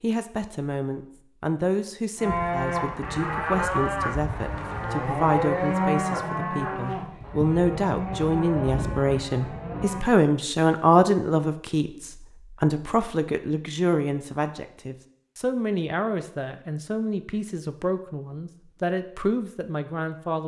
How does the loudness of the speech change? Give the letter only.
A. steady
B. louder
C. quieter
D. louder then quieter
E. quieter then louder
D.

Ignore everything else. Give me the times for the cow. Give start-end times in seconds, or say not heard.
2.1-10.1.